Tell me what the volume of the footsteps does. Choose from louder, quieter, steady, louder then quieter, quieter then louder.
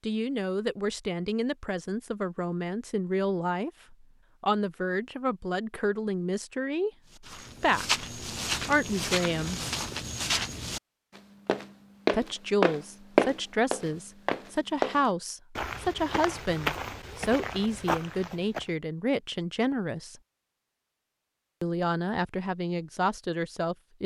louder then quieter.